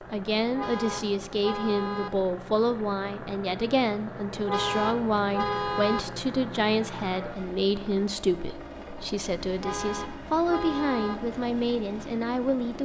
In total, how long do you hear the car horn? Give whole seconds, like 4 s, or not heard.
5 s.